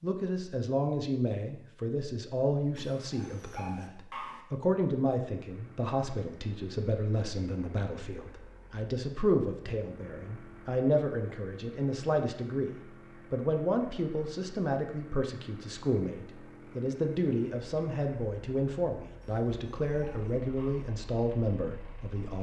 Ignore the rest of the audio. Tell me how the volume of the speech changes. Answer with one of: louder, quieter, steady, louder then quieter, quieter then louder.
steady.